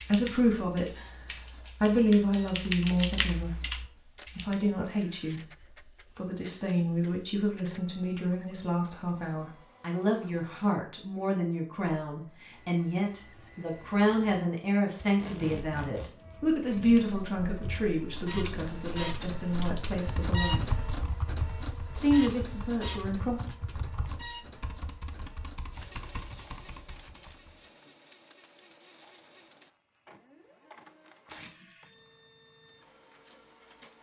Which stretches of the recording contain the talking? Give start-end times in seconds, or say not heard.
0.0-20.8, 21.9-23.4.